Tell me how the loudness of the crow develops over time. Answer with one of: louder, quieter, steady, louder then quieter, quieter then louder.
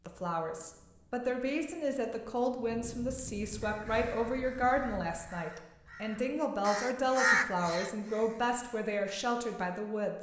louder then quieter.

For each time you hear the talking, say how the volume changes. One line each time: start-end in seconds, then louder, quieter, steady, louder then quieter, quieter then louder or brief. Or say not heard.
0.1-10.1 steady.